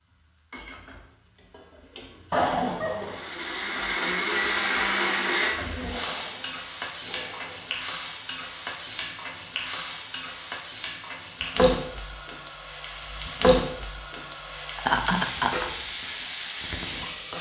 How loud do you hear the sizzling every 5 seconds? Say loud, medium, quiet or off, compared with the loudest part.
quiet, loud, loud, loud.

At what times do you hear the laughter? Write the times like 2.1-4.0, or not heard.
2.3-3.2, 14.8-15.7.